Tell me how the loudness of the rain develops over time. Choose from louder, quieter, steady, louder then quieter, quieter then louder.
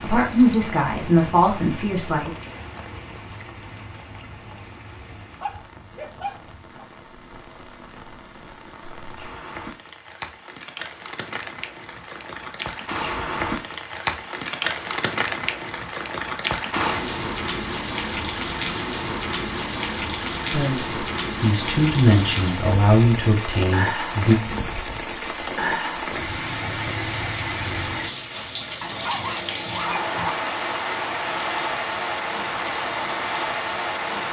louder.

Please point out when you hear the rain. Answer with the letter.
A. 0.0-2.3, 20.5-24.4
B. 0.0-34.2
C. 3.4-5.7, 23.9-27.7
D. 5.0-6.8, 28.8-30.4
B.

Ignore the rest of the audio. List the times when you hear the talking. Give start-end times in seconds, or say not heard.
0.0-2.3, 20.5-24.4.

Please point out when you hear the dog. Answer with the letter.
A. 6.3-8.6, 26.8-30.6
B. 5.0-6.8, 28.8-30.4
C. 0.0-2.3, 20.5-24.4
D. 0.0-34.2
B.